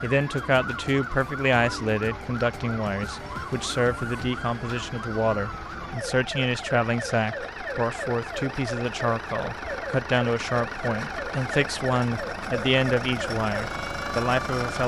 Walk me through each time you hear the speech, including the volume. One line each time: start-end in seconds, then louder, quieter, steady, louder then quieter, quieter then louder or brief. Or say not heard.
0.0-14.8 steady.